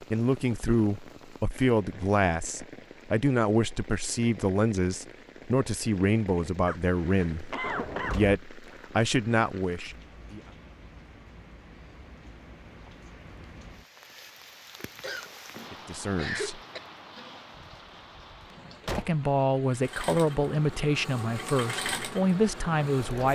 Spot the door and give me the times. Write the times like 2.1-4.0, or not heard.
7.6-8.4, 17.6-19.1.